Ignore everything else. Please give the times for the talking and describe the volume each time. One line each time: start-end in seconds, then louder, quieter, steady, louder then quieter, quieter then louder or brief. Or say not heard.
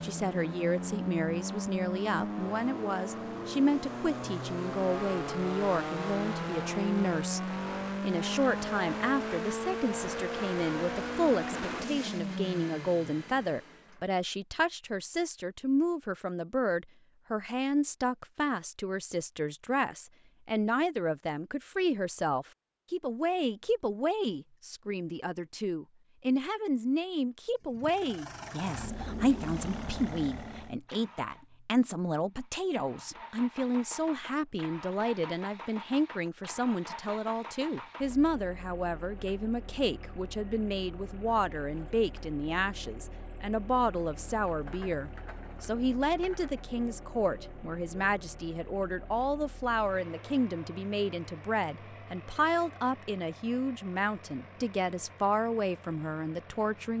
0.0-56.9 steady.